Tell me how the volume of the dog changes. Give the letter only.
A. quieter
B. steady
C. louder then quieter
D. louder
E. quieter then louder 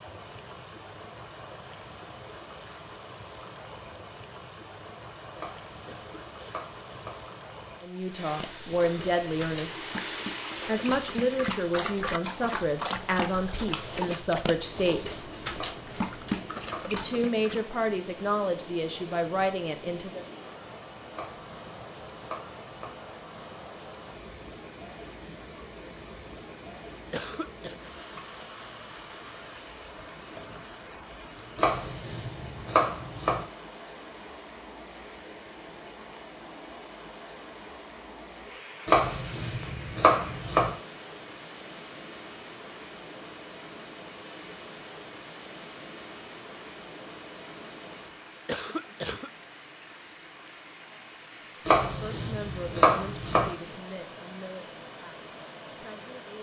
D.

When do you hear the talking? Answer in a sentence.
The talking can be heard from 7.8 to 9.8 s, from 10.7 to 15.2 s, from 16.9 to 20.2 s and from 51.9 to 56.3 s.